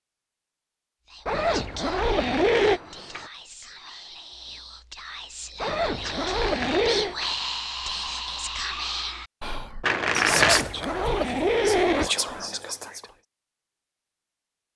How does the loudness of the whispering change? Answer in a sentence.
The loudness of the whispering goes up.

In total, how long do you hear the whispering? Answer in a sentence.
You can hear the whispering for 12 seconds altogether.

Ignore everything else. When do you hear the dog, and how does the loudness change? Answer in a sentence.
You can't hear the dog here.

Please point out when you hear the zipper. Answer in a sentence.
The zipper can be heard from 1.2 to 2.8 s, from 5.6 to 7.2 s and from 10.2 to 12.1 s.